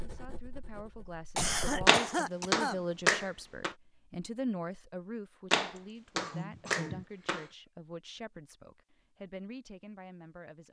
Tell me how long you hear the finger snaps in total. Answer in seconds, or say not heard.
4 s.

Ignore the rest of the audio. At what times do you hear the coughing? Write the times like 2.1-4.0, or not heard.
1.4-2.8, 5.8-7.5.